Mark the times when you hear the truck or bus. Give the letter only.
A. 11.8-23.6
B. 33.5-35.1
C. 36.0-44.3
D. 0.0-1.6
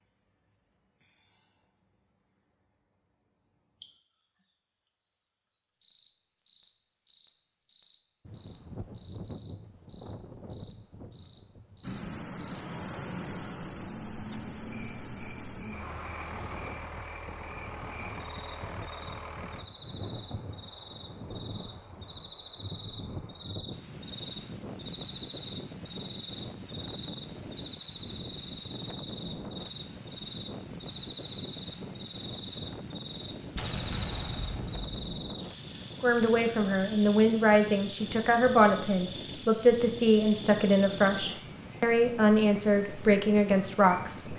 A.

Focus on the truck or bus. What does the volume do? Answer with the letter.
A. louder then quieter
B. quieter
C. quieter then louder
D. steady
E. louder
B.